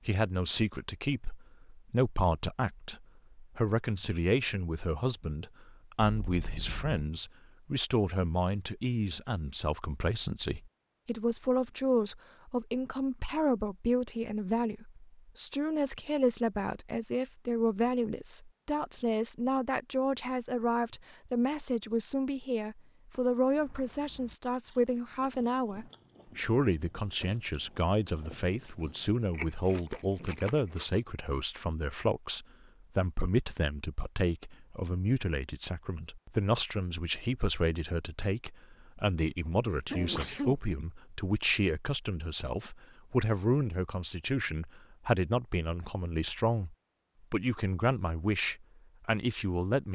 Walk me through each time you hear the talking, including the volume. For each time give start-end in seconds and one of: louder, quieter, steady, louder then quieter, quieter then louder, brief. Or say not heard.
0.1-49.9 steady.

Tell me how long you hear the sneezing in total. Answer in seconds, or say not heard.
2 s.